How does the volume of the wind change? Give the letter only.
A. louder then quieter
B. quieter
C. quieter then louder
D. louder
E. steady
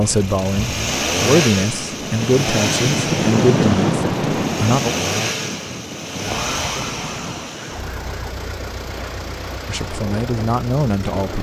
A.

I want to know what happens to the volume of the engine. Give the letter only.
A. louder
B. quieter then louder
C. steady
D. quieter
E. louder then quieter
D.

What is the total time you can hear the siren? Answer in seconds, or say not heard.
2 s.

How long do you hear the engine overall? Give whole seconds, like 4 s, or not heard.
11 s.